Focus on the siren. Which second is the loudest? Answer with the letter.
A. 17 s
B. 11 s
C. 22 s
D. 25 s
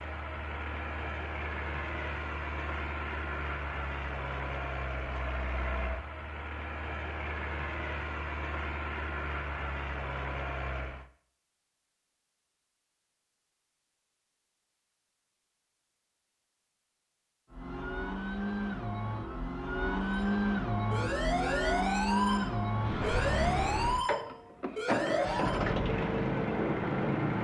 C.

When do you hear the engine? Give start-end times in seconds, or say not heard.
0.0-11.1, 17.5-27.3.